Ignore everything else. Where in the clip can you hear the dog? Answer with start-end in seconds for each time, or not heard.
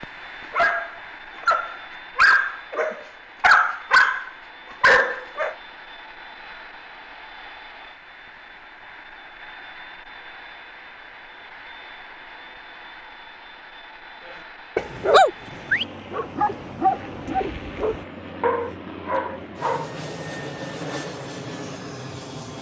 0.0-5.5, 14.8-19.9.